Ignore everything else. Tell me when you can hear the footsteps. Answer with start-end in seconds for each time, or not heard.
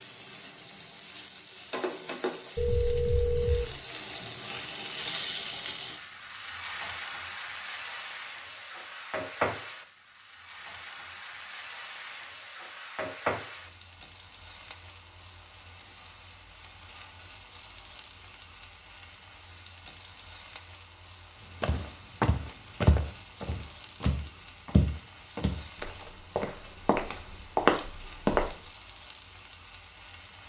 21.6-28.6.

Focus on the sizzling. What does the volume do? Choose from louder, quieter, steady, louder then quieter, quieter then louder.
quieter.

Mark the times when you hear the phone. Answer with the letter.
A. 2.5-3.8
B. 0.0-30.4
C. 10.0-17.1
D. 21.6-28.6
A.